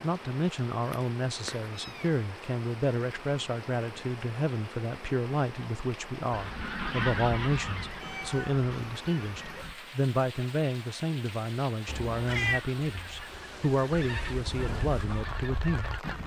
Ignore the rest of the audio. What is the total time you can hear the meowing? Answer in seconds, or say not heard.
3 s.